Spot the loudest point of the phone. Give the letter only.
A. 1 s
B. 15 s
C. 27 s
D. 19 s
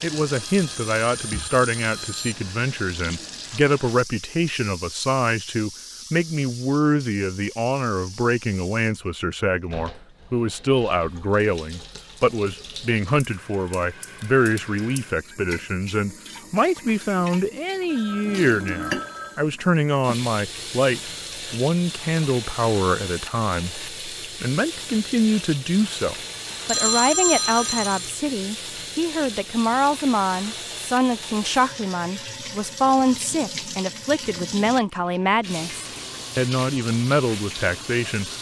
C.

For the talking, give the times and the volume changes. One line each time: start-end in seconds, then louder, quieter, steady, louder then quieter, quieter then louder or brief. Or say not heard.
0.0-38.3 steady.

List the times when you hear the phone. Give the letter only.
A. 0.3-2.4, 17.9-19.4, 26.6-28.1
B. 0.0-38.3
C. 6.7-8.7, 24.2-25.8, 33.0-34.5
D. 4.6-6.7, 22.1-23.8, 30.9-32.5
A.